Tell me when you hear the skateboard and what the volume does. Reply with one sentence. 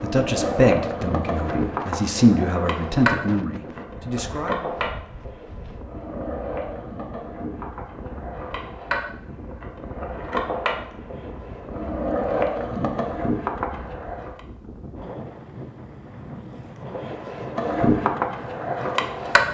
The skateboard can be heard from 0.0 to 14.4 s, getting quieter then louder; and briefly from 16.9 to 19.4 s.